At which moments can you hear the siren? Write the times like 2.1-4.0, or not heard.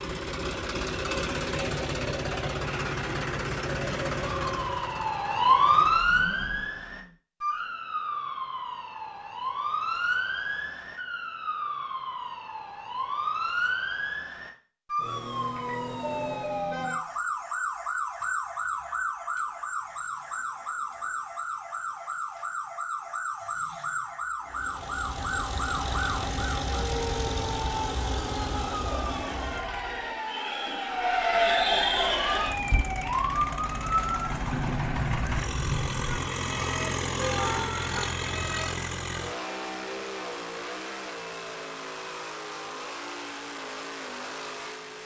4.2-38.6.